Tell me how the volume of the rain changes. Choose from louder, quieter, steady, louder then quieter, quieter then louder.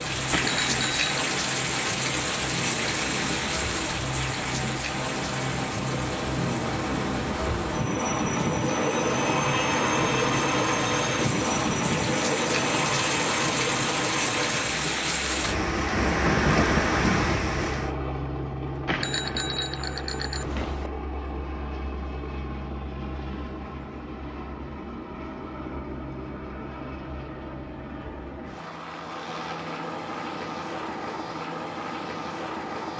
quieter then louder.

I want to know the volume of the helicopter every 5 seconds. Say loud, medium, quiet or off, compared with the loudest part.
medium, loud, loud, medium, medium, medium, medium.